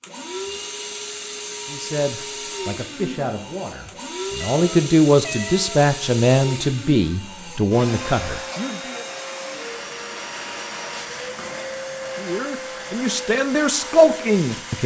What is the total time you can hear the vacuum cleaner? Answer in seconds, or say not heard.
15 s.